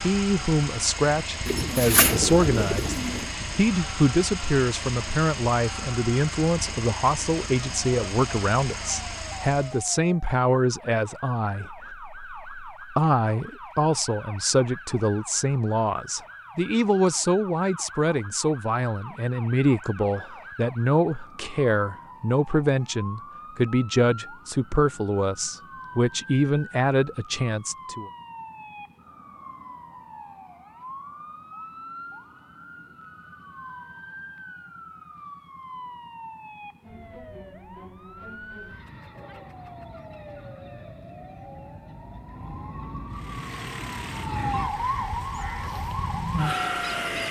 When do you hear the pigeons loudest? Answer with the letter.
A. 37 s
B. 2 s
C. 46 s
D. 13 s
B.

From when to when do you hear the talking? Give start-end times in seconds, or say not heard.
0.0-28.1.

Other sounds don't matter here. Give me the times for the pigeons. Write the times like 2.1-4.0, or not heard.
1.4-3.3.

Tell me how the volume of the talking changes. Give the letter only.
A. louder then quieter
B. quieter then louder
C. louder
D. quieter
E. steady
E.